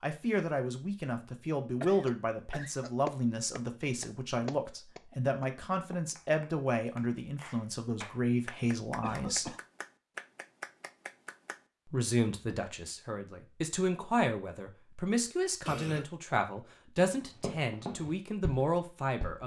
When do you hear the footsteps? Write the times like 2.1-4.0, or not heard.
17.2-19.4.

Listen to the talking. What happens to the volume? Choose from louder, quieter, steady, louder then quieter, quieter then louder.
steady.